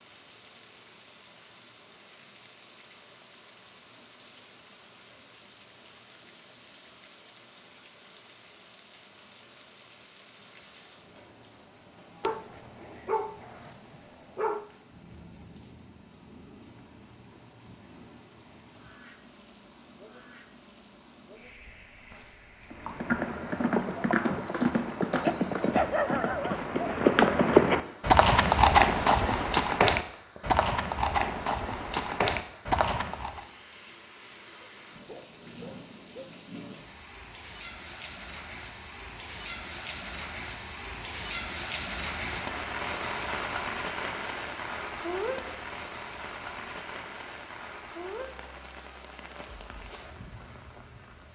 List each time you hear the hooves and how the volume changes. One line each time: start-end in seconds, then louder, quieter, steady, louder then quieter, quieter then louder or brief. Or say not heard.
22.7-33.5 louder then quieter.